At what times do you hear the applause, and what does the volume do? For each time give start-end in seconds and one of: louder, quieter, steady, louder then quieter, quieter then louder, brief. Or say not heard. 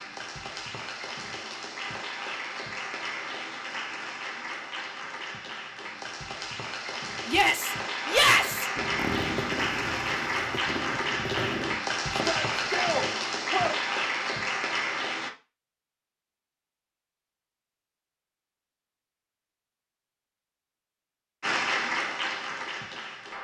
0.0-15.3 louder
21.4-23.3 brief.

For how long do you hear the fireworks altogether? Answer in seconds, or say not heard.
4 s.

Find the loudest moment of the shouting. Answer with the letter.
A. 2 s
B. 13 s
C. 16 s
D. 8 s
D.